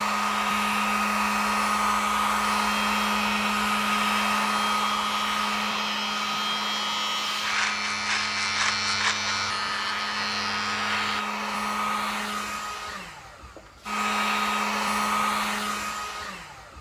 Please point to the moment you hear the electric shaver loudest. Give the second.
9 s.